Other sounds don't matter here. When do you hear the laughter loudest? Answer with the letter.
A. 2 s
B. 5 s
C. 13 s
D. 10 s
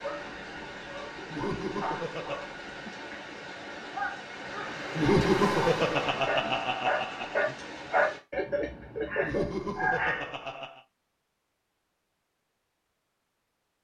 B.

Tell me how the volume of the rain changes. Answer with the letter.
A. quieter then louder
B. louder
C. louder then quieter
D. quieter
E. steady
C.